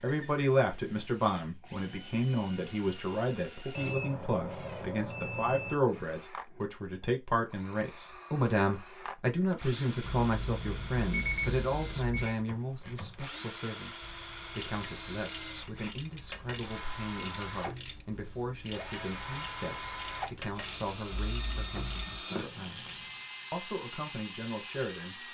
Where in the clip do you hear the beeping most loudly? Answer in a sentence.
The loudest moment of the beeping is at 11 seconds.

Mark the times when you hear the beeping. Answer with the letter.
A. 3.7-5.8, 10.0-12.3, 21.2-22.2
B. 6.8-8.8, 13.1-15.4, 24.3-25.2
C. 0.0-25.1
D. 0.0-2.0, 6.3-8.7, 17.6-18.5
A.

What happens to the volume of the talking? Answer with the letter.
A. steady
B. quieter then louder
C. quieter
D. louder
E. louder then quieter
C.